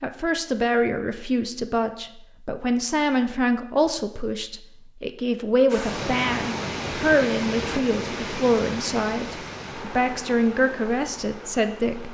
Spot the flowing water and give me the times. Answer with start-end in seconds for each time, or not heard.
5.7-12.0.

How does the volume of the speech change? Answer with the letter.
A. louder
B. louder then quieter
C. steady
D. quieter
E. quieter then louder
C.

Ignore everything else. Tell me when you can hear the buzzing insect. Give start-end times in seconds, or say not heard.
not heard.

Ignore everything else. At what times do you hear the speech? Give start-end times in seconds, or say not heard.
0.0-12.0.